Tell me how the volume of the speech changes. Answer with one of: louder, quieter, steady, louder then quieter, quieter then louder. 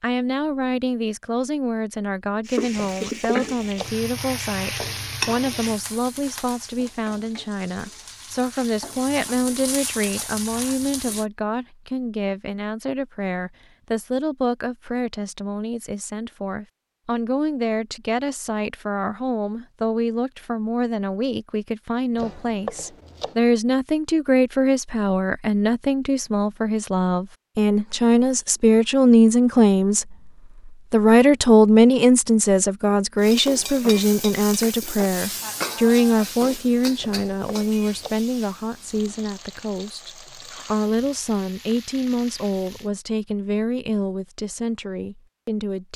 louder then quieter.